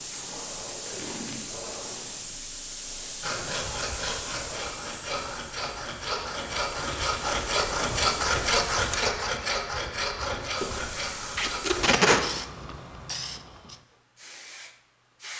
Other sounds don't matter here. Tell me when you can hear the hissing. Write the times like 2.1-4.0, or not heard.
0.0-8.9, 10.6-15.3.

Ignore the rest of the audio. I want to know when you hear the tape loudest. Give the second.
12 s.